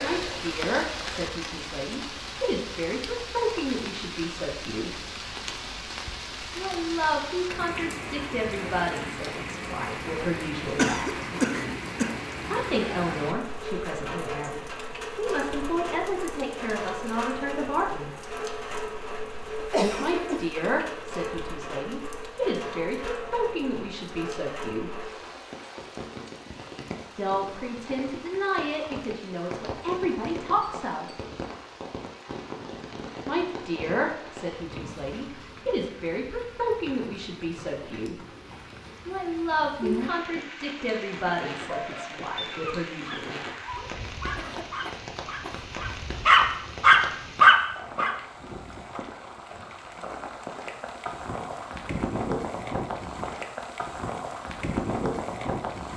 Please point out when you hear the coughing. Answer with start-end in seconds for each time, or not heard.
10.8-12.2, 19.6-20.5, 44.4-45.6.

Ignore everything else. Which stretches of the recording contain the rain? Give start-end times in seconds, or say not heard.
0.0-55.9.